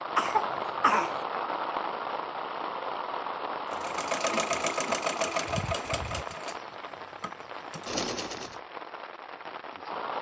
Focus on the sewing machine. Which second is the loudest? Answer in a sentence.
The loudest moment of the sewing machine is at 5 seconds.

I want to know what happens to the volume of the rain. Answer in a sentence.
The volume of the rain goes down.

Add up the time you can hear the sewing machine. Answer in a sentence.
The sewing machine can be heard for 5 seconds in total.